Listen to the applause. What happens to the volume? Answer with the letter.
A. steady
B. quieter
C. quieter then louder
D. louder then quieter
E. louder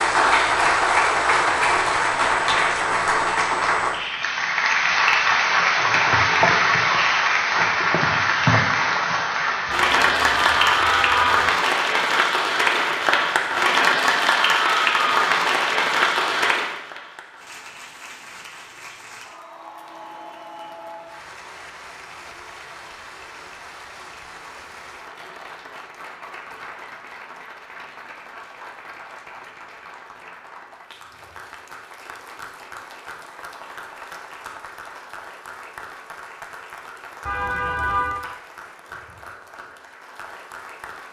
B.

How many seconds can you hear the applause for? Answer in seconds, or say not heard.
41 s.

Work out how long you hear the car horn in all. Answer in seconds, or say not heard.
3 s.